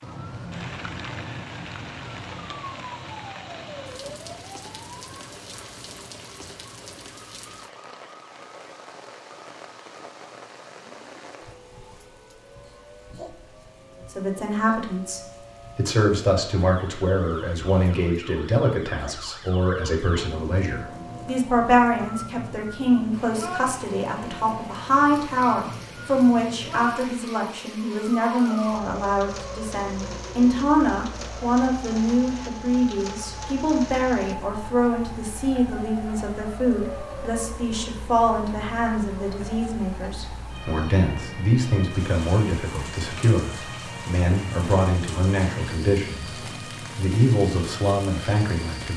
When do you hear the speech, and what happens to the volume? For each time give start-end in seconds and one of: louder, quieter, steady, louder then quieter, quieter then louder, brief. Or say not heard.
14.1-48.9 steady.